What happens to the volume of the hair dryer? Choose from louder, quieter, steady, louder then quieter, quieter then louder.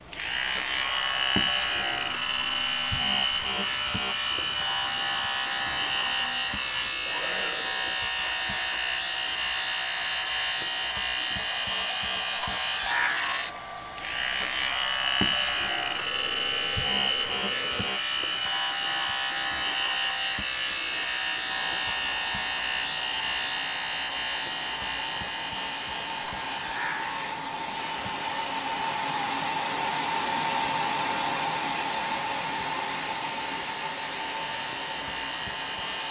louder.